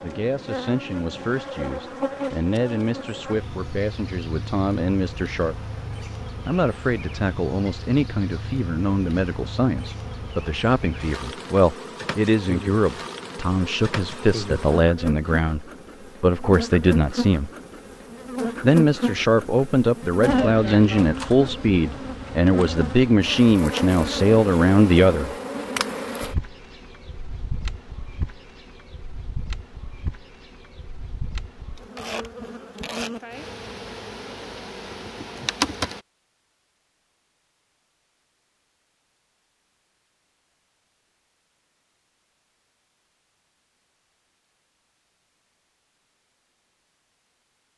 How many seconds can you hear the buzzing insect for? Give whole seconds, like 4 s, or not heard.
36 s.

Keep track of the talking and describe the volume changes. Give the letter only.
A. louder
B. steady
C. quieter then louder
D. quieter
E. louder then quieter
A.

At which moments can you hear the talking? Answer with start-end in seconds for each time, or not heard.
0.0-5.5, 6.5-17.5, 18.6-25.3.